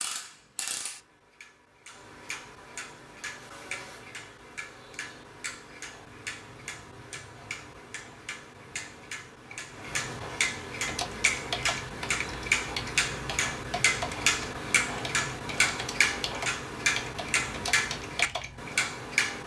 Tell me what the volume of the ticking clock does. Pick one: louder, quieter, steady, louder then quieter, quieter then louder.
louder.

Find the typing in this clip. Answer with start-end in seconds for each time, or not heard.
10.8-18.6.